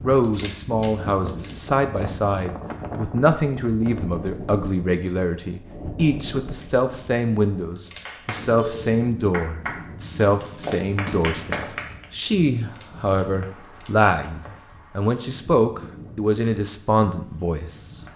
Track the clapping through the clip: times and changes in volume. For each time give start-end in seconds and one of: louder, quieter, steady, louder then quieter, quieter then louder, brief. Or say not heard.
8.1-12.1 quieter then louder.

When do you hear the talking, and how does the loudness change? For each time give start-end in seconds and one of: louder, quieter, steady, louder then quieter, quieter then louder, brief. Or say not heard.
0.0-18.1 steady.